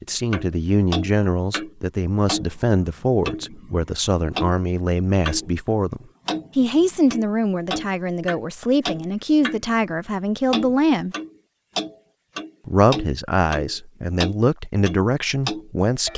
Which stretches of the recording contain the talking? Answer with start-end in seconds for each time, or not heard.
0.0-11.2, 12.7-16.1.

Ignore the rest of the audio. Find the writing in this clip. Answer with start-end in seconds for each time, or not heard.
not heard.